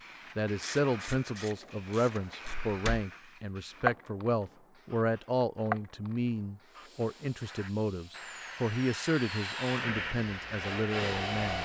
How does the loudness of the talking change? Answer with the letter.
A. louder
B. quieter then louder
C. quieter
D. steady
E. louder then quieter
D.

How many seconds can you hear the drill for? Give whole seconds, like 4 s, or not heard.
5 s.